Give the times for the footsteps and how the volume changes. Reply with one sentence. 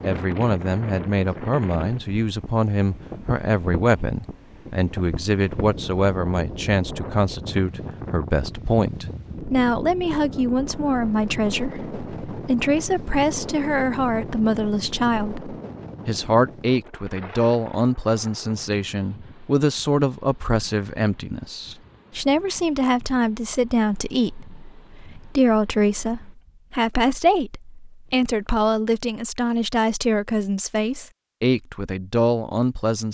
You can't hear the footsteps here.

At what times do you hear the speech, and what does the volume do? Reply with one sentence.
You can hear the speech from 0.0 to 33.0 s, at a steady volume.